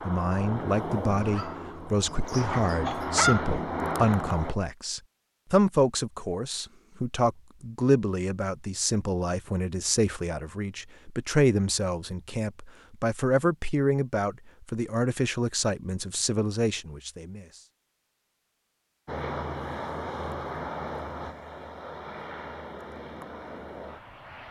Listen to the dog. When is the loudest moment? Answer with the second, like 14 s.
3 s.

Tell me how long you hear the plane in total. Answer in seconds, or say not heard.
10 s.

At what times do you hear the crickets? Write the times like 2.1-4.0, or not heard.
not heard.